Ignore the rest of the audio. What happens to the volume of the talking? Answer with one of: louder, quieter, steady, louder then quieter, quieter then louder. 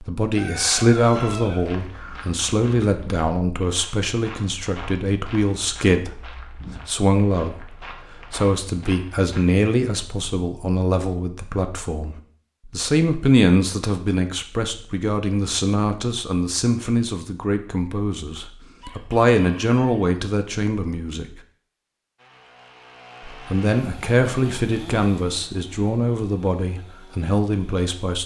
steady.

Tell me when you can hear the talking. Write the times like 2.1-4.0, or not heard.
0.0-21.2, 23.3-28.2.